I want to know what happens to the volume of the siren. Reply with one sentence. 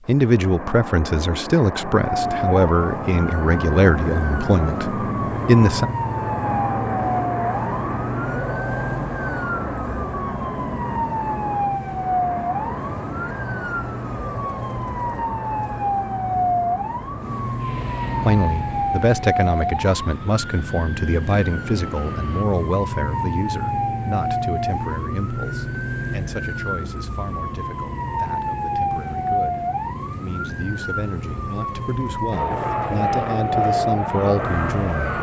The volume of the siren stays about the same.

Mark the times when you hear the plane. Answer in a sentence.
You can hear the plane from 0.0 to 22.4 s and from 32.3 to 35.1 s.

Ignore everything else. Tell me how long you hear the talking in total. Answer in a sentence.
You can hear the talking for 23 seconds altogether.